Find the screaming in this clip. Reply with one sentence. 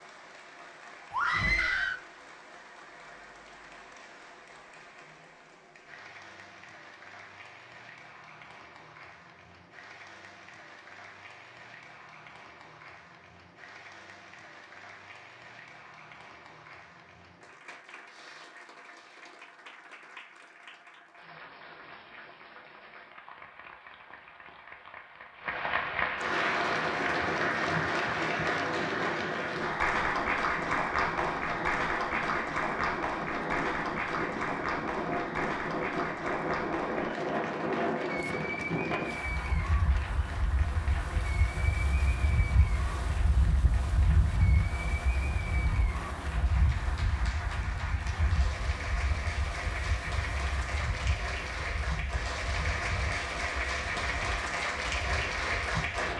You can hear the screaming from 1.1 to 2.0 s.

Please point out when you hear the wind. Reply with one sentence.
You can hear the wind from 26.4 to 56.1 s.